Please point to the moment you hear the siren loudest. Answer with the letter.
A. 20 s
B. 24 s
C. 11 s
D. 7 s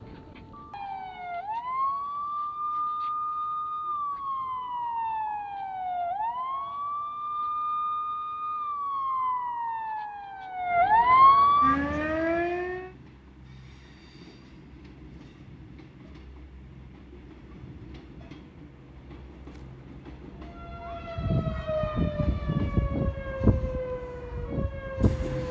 C.